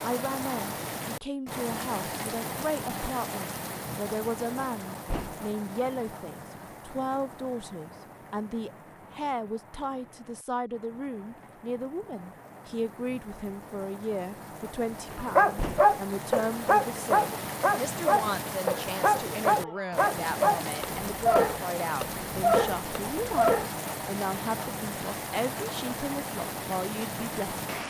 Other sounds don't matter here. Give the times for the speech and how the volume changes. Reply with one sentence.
You can hear the speech from 0.0 to 27.6 s, at a steady volume.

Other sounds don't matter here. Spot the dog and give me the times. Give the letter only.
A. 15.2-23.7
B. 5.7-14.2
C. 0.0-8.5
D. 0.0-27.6
A.